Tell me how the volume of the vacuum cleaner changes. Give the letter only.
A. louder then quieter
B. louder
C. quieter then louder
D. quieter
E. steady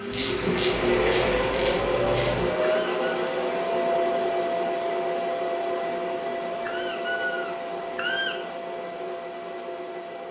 D.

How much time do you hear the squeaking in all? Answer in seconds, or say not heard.
2 s.